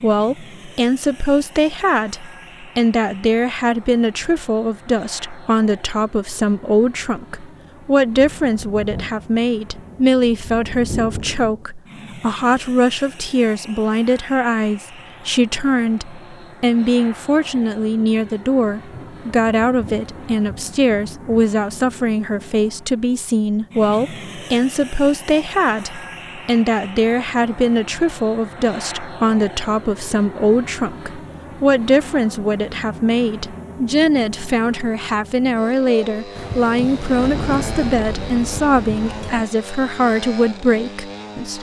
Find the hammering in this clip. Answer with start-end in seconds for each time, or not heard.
not heard.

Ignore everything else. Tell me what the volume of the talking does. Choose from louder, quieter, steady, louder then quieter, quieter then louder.
steady.